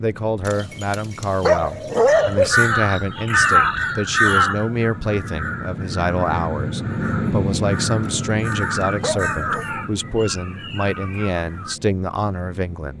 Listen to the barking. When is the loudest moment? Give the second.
2 s.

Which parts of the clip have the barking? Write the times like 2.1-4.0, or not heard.
0.5-2.6, 8.0-9.7.